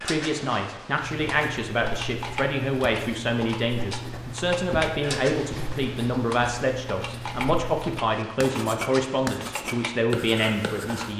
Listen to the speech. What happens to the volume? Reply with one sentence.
The loudness of the speech stays about the same.